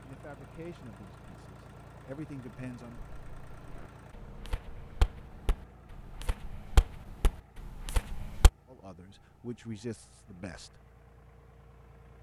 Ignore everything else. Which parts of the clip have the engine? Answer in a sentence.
You can hear the engine from 0.0 to 12.1 s.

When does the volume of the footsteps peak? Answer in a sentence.
The volume of the footsteps peaks at 7 seconds.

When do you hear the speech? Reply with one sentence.
The speech can be heard from 0.0 to 3.0 s and from 8.7 to 10.8 s.